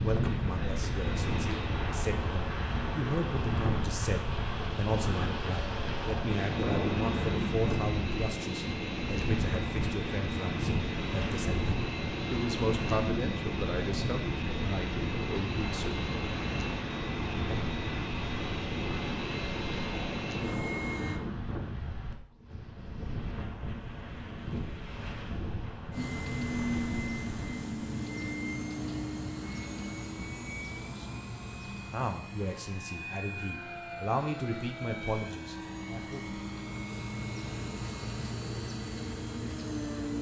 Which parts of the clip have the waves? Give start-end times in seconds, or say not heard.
0.0-27.6.